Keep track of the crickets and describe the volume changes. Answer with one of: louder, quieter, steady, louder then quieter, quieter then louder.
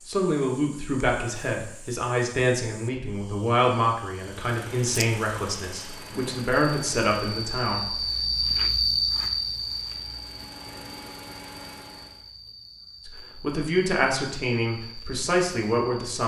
louder then quieter.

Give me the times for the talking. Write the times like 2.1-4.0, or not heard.
0.1-8.0, 13.1-16.2.